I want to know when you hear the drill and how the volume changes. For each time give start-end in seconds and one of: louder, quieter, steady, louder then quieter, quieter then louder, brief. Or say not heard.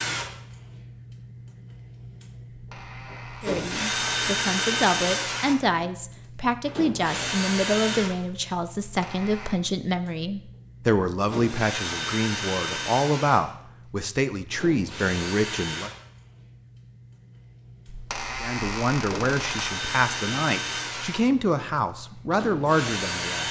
0.0-23.4 quieter then louder.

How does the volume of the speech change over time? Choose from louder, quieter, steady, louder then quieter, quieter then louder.
steady.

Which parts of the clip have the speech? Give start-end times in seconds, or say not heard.
3.4-15.9, 18.4-23.4.